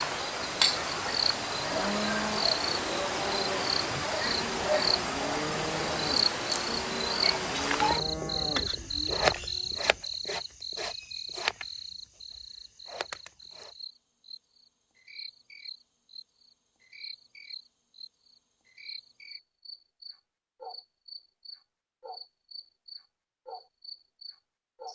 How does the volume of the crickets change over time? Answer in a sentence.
The loudness of the crickets goes down.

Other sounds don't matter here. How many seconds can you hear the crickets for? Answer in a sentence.
The crickets can be heard for 25 seconds in total.